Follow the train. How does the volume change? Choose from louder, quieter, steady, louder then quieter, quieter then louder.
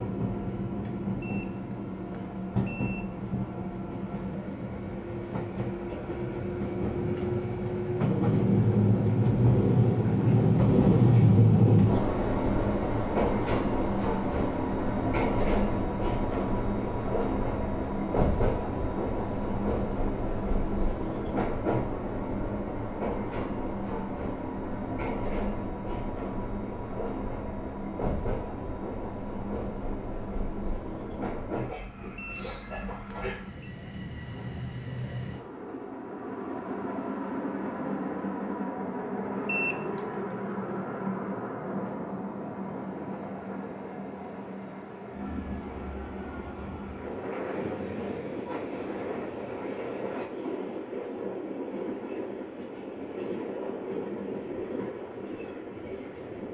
quieter.